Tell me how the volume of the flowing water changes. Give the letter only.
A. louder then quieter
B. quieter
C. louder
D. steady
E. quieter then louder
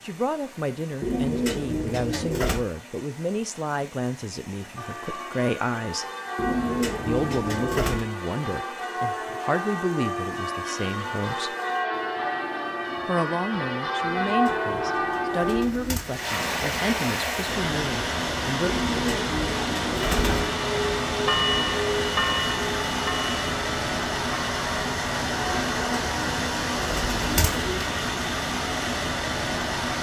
C.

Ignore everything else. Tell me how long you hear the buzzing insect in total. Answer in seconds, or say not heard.
not heard.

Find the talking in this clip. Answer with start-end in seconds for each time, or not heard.
0.0-6.0, 7.0-11.6, 13.1-18.7.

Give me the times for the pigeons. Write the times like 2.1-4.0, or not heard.
1.0-2.6, 6.3-8.1, 14.0-16.2, 18.6-20.6, 25.4-27.9.